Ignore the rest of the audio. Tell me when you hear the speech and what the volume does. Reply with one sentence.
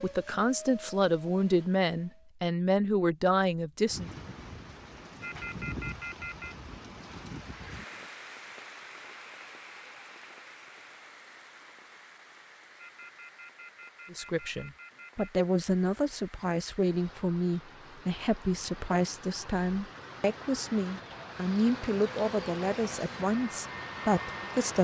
The speech can be heard from 0.0 to 4.1 s, at a steady volume; and from 14.1 to 24.7 s, at a steady volume.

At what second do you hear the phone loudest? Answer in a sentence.
The loudest moment of the phone is at 6 seconds.